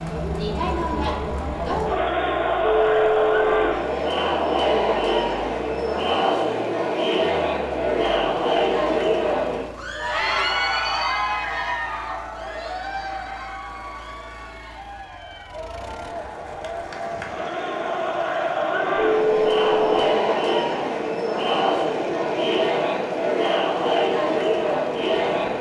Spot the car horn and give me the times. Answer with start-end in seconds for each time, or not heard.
2.6-3.8, 18.9-20.1.